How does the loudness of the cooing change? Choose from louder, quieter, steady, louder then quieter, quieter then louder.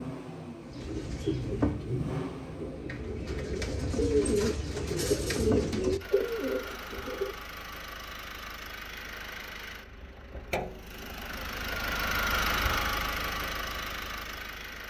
quieter then louder.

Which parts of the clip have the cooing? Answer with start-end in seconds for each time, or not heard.
0.7-7.3.